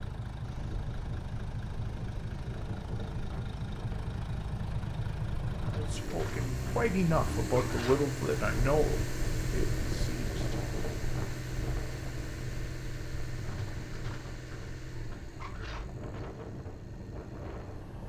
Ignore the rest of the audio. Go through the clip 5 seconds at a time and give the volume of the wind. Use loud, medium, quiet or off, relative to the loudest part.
medium, loud, loud, loud.